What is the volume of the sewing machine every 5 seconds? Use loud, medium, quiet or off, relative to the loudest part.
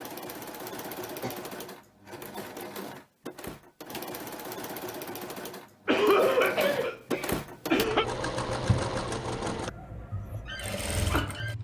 medium, loud, loud.